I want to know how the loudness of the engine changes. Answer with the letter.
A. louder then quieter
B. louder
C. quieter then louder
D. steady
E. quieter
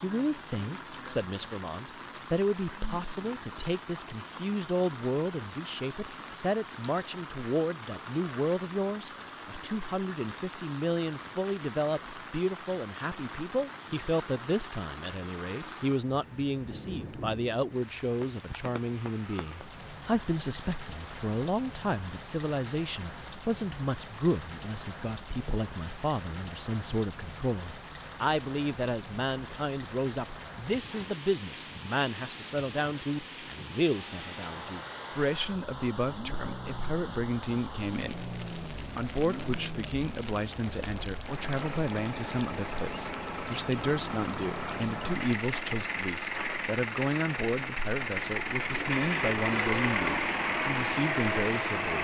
B.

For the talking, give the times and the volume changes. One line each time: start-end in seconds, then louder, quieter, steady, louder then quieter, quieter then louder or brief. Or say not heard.
0.0-52.0 steady.